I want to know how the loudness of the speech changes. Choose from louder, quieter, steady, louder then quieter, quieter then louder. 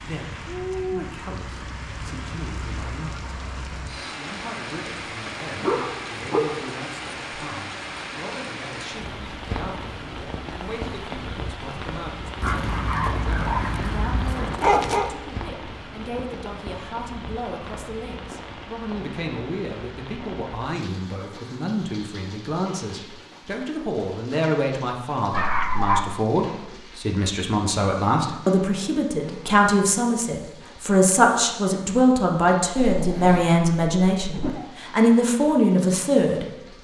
louder.